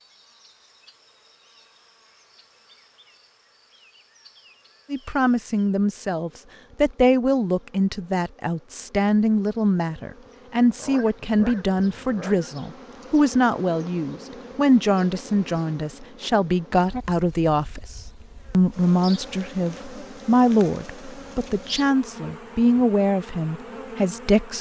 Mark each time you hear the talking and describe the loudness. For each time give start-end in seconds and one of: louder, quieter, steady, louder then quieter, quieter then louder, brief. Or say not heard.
4.9-24.5 steady.